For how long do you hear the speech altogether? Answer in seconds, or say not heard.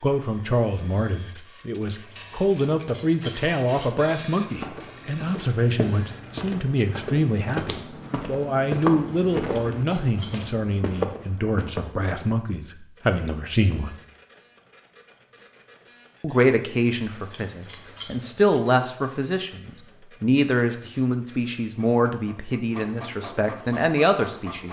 22 s.